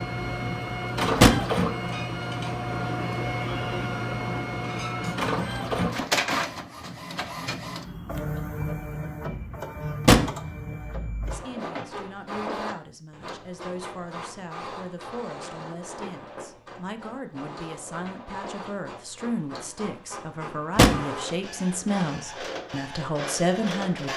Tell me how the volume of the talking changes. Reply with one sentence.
The loudness of the talking goes up.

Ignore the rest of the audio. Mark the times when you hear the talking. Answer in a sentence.
You can hear the talking from 11.2 to 24.1 s.